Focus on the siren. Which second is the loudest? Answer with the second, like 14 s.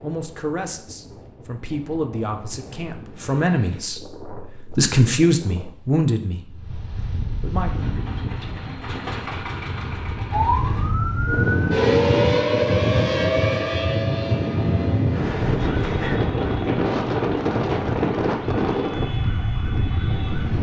12 s.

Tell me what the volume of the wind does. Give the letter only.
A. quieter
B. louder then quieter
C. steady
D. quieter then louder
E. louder
E.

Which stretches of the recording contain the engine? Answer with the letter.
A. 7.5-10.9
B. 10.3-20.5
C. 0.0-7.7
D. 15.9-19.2
A.